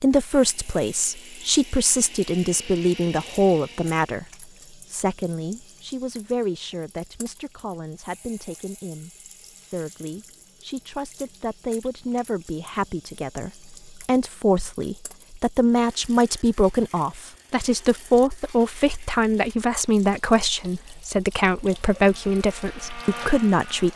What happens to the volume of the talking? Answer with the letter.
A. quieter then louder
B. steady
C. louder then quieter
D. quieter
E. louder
A.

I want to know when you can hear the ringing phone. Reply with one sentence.
The ringing phone can't be heard in this clip.